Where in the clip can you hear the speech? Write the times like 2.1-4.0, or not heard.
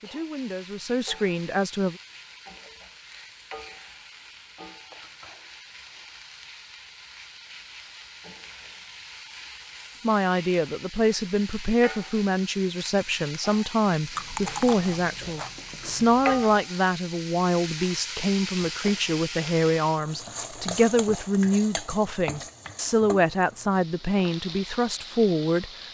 0.0-1.9, 10.0-25.7.